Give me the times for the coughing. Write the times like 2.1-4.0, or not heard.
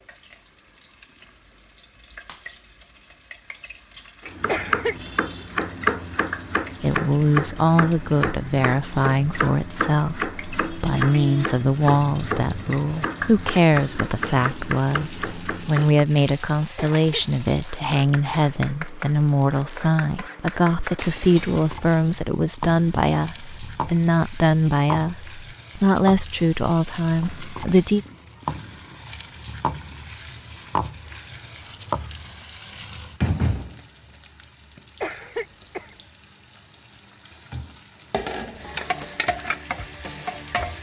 4.5-5.0, 16.8-17.2, 35.0-36.0.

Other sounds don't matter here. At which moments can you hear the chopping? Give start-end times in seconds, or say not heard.
4.2-16.1.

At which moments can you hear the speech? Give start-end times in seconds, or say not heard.
6.8-28.1.